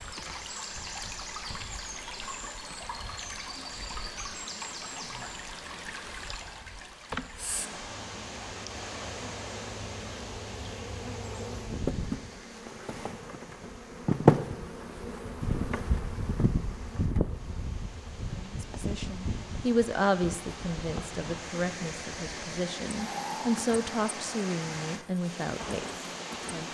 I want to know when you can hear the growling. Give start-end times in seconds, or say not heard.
22.9-23.6.